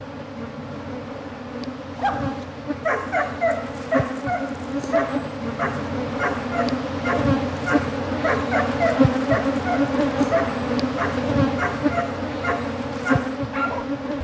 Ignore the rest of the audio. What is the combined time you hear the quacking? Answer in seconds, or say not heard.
not heard.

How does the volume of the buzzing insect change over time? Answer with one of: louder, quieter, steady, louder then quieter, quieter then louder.
louder.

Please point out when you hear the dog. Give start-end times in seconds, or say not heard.
1.9-13.8.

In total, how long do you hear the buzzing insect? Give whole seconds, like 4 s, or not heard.
14 s.